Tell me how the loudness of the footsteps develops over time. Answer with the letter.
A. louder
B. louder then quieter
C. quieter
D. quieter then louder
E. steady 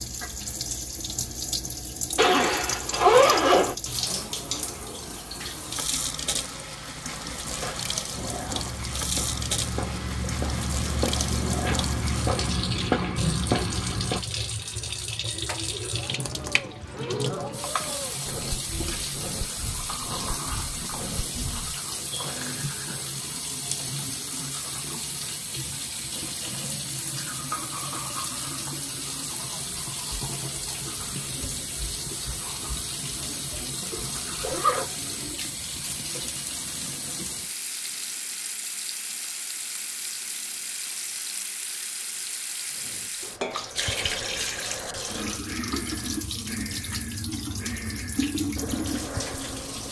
A.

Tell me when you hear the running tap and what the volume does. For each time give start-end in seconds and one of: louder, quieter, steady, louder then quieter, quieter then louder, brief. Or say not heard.
0.0-49.8 steady.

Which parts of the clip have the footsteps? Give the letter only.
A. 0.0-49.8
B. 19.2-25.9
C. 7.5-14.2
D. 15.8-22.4
C.